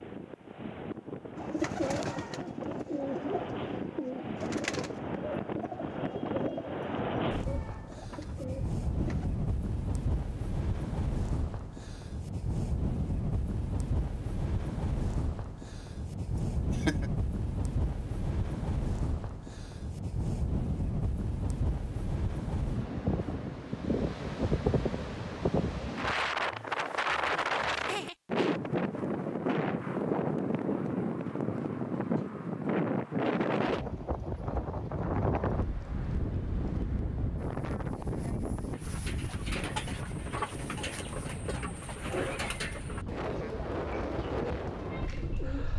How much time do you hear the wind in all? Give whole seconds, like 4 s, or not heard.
46 s.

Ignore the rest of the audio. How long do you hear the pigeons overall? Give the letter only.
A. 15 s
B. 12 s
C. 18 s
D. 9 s
A.